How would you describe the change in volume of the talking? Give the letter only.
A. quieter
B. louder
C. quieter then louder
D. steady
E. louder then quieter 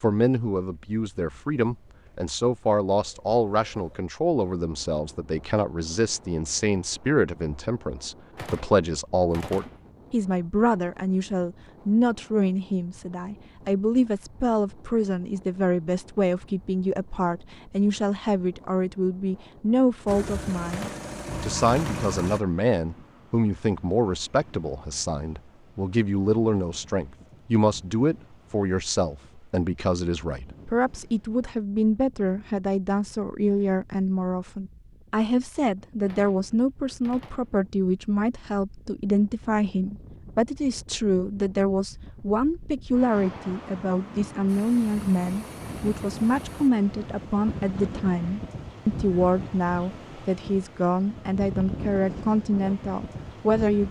D.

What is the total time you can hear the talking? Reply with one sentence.
You can hear the talking for 54 seconds altogether.